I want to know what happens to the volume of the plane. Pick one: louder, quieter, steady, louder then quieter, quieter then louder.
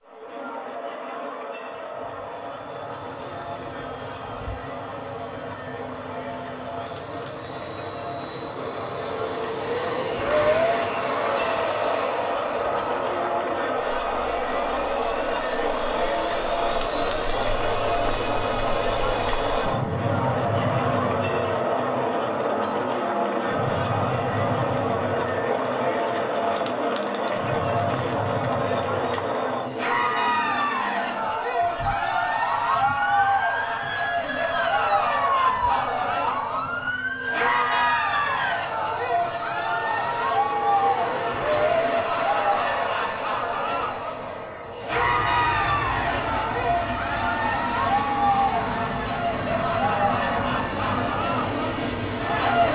steady.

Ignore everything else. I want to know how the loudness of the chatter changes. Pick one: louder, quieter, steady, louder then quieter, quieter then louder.
louder.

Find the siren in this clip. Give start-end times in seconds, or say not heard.
31.8-38.5.